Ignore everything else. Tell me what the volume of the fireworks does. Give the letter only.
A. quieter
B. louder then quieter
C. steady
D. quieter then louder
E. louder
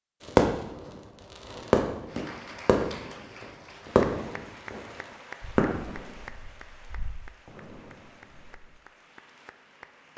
A.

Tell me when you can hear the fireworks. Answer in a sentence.
You can hear the fireworks from 0.2 to 8.6 s.